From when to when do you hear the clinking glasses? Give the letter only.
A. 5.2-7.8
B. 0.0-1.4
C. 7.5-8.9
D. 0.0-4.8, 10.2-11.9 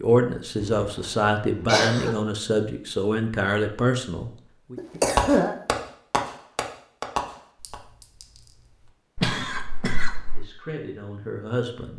C.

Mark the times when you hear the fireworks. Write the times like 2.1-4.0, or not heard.
5.2-7.8.